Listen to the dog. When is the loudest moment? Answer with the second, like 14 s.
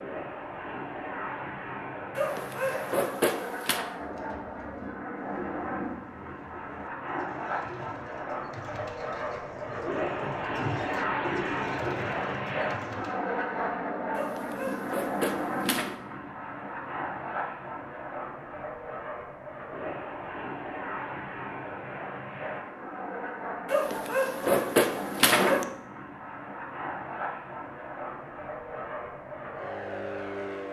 25 s.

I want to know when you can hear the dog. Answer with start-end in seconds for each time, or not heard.
2.1-3.9, 14.2-15.9, 23.6-25.6.